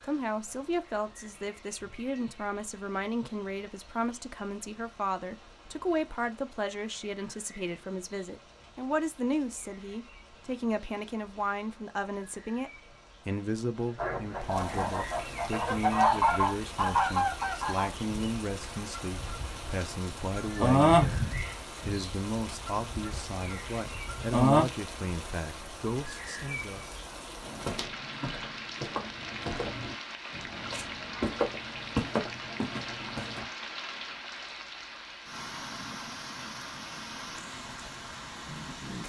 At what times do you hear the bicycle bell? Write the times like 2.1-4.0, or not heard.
not heard.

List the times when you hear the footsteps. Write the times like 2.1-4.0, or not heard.
27.4-33.5.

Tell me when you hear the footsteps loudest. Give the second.
32 s.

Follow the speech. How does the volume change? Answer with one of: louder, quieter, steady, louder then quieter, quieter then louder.
steady.